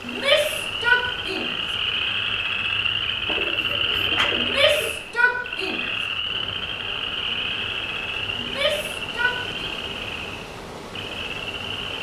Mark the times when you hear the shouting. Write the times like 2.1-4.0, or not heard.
0.1-1.6, 4.3-5.9, 8.3-9.7.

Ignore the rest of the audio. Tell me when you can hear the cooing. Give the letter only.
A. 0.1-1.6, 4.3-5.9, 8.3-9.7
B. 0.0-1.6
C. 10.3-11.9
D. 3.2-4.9
D.